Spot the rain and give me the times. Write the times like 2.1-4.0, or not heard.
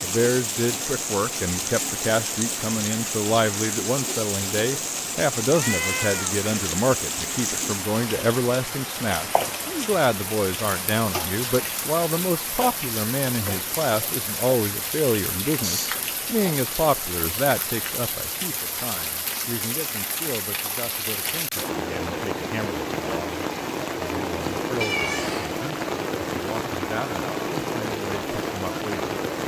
0.0-29.4.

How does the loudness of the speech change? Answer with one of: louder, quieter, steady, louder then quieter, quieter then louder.
quieter.